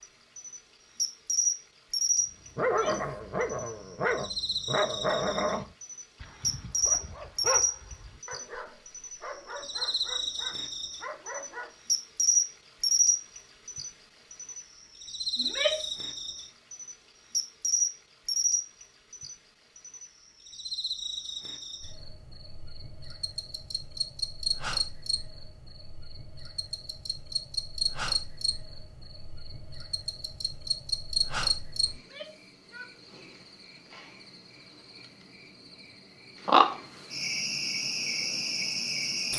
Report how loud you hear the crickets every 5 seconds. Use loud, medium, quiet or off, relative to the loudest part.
loud, loud, loud, loud, medium, medium, medium, loud.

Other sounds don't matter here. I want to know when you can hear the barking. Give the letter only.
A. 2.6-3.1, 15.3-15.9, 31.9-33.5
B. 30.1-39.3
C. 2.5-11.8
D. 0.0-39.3
C.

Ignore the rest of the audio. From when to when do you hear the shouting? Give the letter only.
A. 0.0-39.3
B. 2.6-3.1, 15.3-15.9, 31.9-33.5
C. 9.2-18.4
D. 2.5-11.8
B.